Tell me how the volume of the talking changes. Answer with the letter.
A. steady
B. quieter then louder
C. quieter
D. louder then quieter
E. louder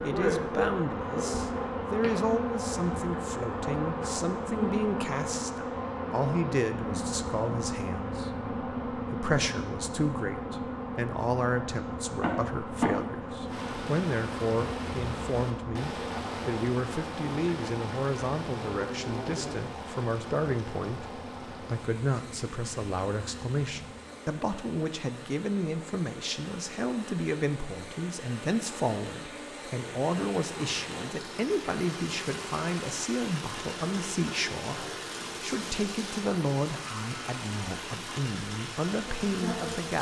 A.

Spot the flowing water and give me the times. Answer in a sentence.
The flowing water can be heard from 13.4 to 39.9 s.